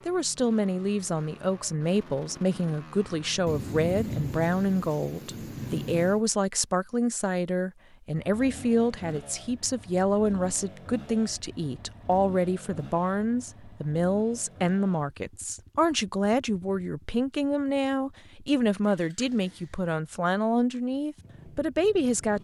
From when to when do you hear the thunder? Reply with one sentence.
The thunder can be heard from 3.5 to 6.2 s.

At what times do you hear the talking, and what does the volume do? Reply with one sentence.
The talking can be heard from 0.1 to 22.3 s, at a steady volume.